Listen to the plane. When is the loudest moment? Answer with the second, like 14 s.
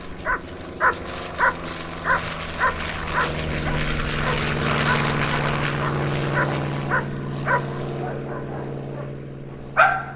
5 s.